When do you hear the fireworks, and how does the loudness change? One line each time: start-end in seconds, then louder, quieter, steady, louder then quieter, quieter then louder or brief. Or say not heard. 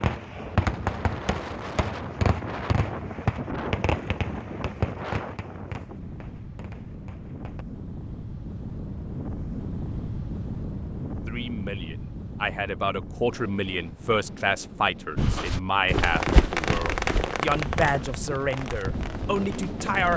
0.0-7.7 quieter
16.0-20.1 quieter.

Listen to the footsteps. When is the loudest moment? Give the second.
16 s.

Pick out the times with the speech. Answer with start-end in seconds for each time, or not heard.
11.2-20.1.